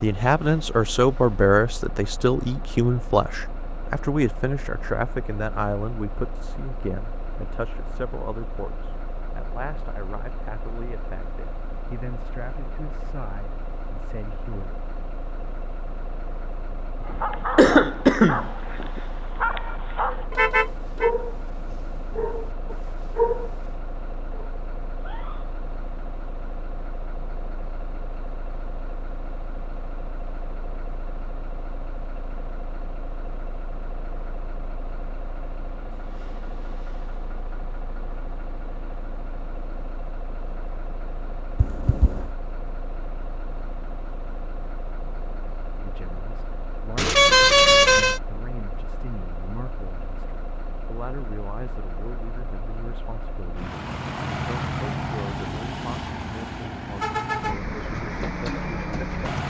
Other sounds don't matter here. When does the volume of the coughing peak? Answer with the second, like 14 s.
18 s.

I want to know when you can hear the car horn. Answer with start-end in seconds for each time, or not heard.
20.3-21.1, 47.0-48.2.